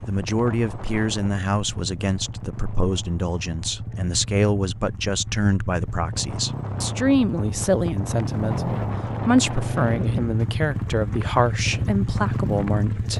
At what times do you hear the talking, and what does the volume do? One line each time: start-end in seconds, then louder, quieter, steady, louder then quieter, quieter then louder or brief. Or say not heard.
0.1-13.1 steady.